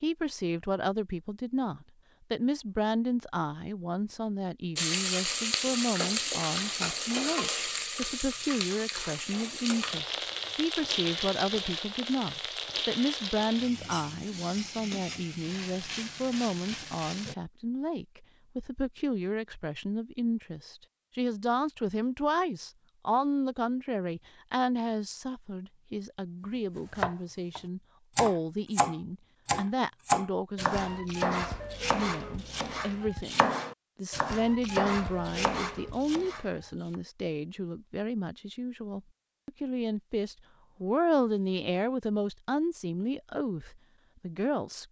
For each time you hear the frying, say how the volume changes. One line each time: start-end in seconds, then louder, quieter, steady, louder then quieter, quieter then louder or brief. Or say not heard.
4.8-17.4 quieter.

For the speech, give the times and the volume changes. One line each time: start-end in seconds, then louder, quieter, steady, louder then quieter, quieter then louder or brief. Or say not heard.
0.0-44.8 steady.